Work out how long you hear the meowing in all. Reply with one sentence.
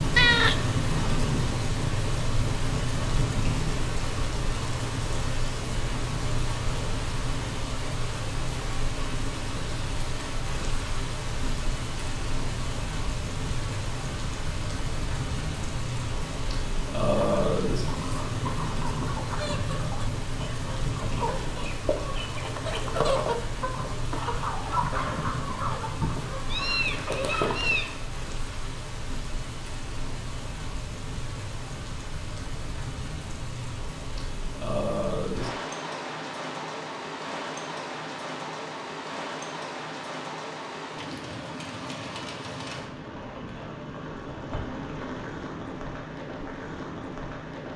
The meowing can be heard for 2 seconds in total.